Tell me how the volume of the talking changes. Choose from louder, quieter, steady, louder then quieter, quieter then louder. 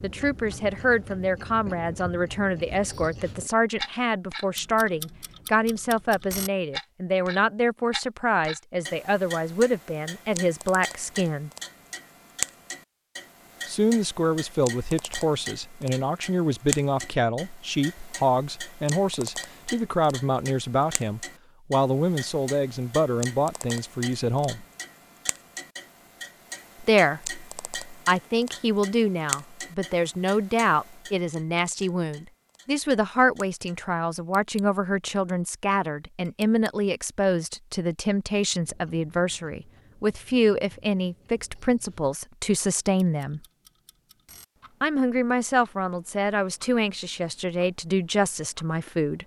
steady.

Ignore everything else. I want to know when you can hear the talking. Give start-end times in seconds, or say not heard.
0.0-11.5, 13.7-24.6, 26.8-43.4, 44.8-49.2.